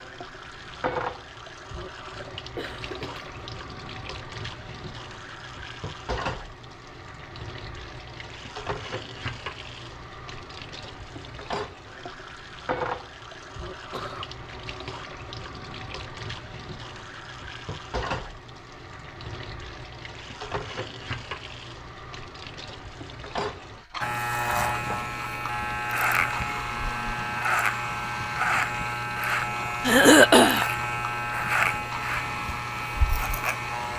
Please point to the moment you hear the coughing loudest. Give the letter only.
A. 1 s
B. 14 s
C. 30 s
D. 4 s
C.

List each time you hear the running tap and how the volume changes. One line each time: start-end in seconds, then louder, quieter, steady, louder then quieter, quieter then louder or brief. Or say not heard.
0.0-33.9 steady.